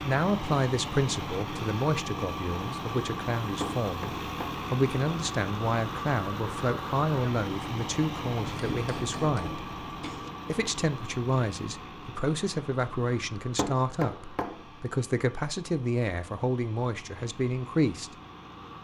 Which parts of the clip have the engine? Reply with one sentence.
You can hear the engine from 0.0 to 18.7 s.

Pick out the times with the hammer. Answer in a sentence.
You can hear the hammer from 3.6 to 4.7 s, from 8.4 to 10.3 s and from 13.6 to 14.7 s.